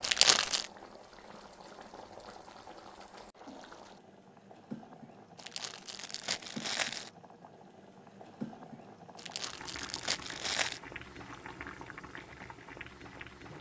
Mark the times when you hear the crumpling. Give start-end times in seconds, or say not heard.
0.0-0.7, 5.3-7.1, 9.2-10.8.